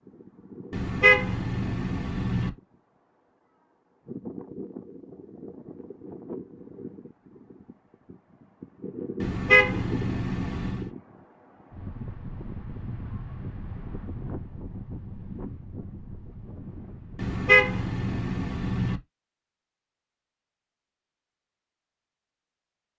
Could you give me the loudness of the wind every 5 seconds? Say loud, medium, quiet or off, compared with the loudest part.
loud, loud, loud, loud, off.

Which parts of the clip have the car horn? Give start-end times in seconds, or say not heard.
0.7-2.5, 9.2-10.9, 17.1-19.0.